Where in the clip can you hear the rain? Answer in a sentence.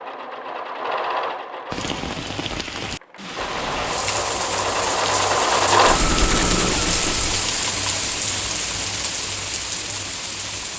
The rain can be heard from 1.7 to 10.7 s.